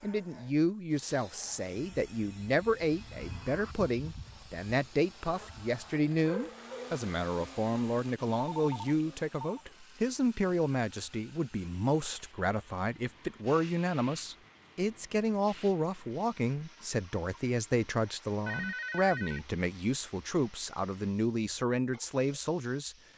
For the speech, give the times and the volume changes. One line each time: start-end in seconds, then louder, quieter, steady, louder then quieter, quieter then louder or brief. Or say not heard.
0.0-22.9 steady.